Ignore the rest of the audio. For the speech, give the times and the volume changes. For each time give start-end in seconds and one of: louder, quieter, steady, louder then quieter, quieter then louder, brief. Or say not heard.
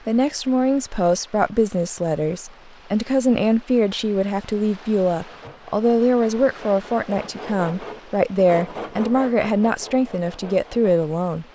0.1-11.4 steady.